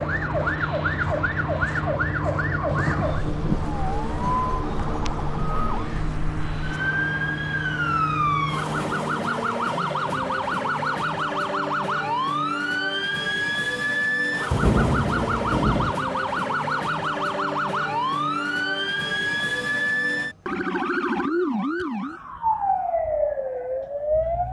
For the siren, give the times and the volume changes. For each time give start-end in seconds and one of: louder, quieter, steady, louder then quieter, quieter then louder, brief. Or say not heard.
0.0-24.4 steady.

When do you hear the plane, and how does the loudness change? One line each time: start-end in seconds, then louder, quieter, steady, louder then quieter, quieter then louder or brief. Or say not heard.
0.0-9.2 steady.